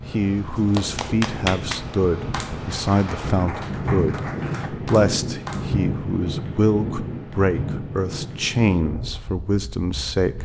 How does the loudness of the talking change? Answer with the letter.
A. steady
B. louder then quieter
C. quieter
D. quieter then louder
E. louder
A.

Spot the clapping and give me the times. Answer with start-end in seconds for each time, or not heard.
0.6-5.7.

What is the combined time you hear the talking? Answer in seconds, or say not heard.
10 s.